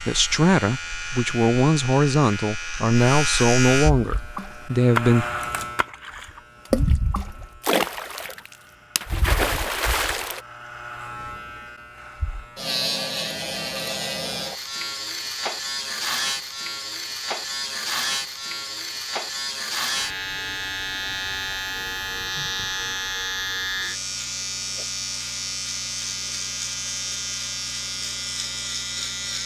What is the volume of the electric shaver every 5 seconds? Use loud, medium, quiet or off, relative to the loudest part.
loud, medium, loud, loud, loud, loud.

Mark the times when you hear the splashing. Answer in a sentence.
The splashing can be heard from 4.0 to 10.4 s.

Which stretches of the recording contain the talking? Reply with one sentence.
You can hear the talking from 0.0 to 5.2 s.